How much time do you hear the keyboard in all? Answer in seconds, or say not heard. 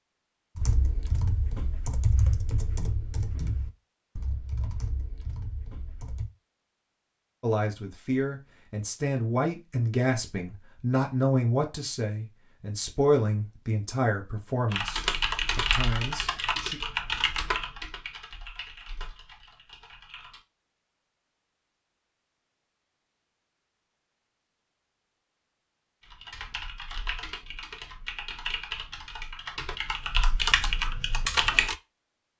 17 s.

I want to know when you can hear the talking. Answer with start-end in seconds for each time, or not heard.
7.4-16.8.